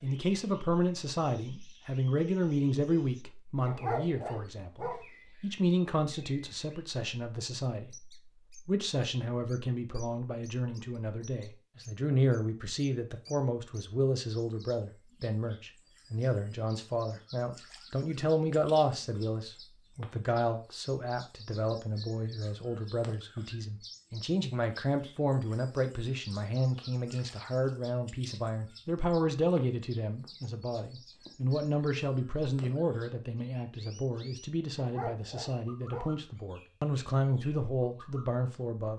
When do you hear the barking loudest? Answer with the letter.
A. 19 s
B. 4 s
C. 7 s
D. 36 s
B.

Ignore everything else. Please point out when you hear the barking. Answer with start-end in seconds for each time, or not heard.
3.6-5.0, 34.8-36.0.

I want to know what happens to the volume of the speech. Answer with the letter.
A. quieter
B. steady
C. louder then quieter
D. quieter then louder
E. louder
B.